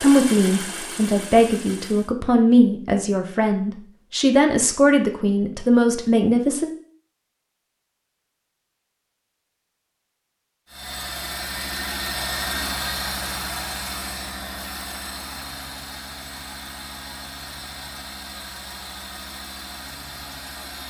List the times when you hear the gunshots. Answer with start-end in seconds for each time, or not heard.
not heard.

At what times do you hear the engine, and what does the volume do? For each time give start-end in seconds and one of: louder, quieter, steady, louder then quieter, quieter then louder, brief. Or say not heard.
0.0-2.1 brief
10.7-20.8 quieter.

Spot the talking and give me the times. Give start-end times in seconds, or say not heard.
0.0-6.7.